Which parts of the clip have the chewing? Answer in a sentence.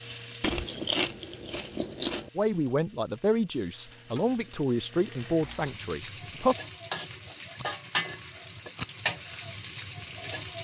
You can hear the chewing from 0.4 to 2.3 s and from 7.5 to 8.9 s.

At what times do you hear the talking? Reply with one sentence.
You can hear the talking from 2.4 to 6.5 s.